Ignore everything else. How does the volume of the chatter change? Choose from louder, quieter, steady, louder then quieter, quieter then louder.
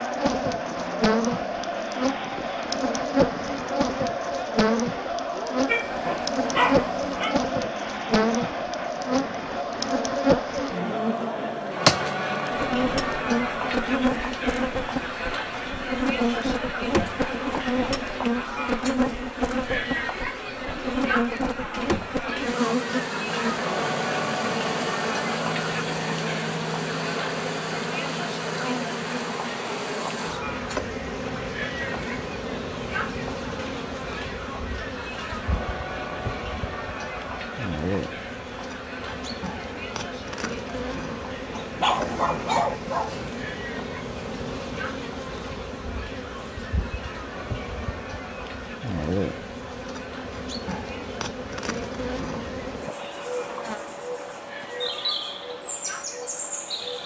quieter.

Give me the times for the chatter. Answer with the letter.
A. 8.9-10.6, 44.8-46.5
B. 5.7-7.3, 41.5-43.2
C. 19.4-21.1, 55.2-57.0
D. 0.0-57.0
D.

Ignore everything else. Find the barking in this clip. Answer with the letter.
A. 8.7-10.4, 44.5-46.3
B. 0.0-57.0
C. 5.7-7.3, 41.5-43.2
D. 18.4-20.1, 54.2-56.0
C.